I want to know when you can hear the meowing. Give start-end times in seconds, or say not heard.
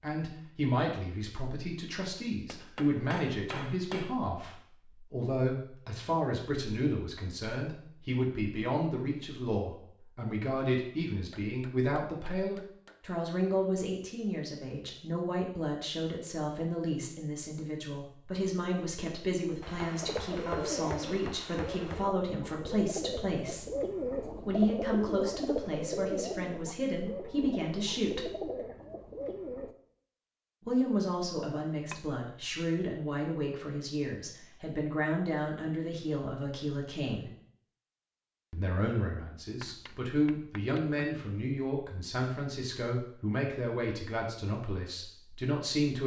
not heard.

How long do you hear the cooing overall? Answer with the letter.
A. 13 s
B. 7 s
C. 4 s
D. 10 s
D.